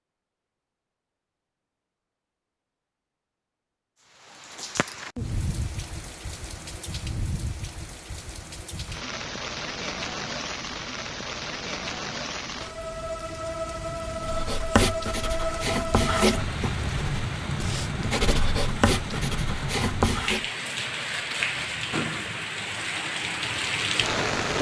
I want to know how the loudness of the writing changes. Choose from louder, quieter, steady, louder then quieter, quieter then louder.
quieter then louder.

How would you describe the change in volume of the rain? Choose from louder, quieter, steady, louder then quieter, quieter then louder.
louder.